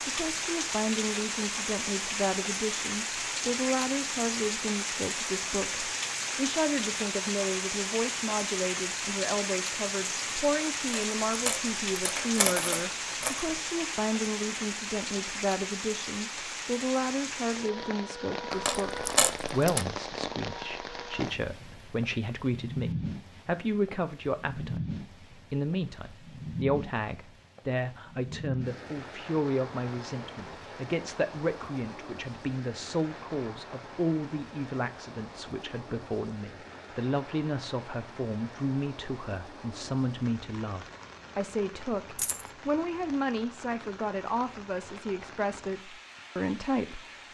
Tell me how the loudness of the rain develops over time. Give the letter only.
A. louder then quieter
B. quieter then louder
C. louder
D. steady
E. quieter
E.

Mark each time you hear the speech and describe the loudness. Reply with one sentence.
You can hear the speech from 0.1 to 47.1 s, at a steady volume.